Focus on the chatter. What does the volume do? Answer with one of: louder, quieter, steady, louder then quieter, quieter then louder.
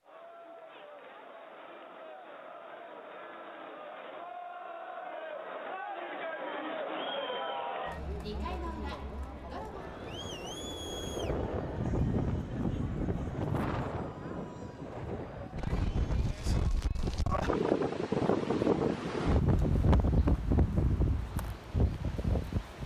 louder then quieter.